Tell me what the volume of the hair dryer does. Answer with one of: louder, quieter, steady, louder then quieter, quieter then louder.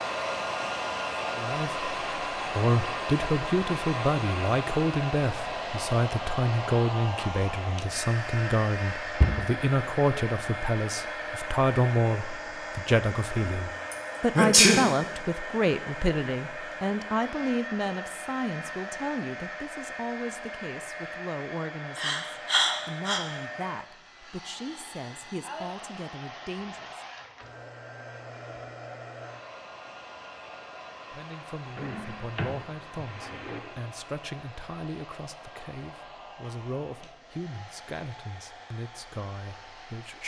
quieter.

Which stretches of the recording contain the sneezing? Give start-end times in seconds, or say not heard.
13.9-14.8, 21.9-23.2.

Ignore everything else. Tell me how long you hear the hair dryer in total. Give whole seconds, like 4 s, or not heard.
40 s.